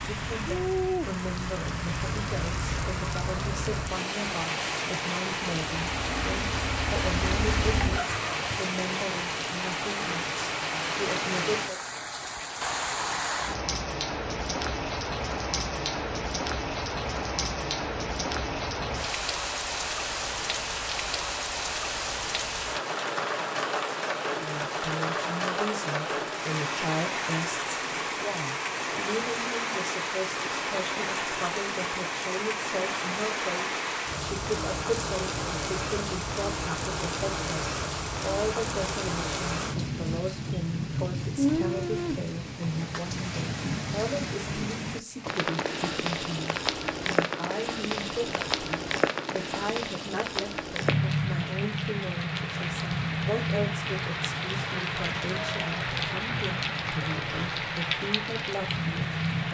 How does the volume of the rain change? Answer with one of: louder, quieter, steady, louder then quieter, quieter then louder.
steady.